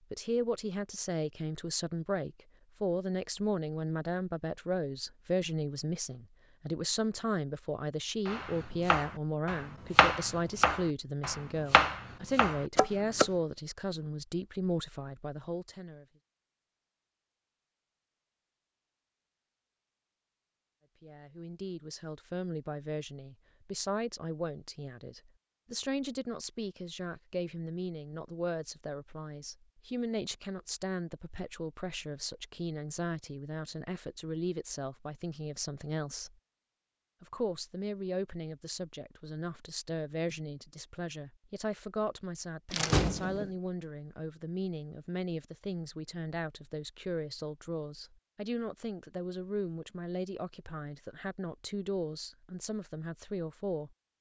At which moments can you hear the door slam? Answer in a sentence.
The door slam can be heard from 42.7 to 43.5 s.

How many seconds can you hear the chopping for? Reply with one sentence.
The chopping can be heard for 5 seconds in total.